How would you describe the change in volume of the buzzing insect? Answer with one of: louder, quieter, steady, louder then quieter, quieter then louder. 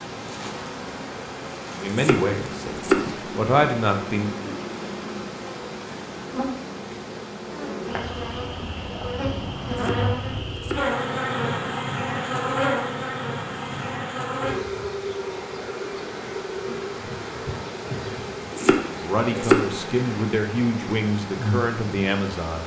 louder then quieter.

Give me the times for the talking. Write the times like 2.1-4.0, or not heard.
1.7-4.5, 18.9-22.6.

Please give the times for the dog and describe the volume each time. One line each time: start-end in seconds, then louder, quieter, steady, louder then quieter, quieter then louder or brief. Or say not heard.
not heard.